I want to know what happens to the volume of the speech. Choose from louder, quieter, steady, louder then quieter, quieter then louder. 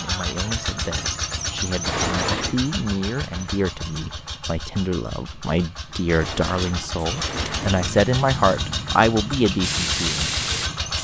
louder.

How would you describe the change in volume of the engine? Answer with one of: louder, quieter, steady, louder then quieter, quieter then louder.
quieter then louder.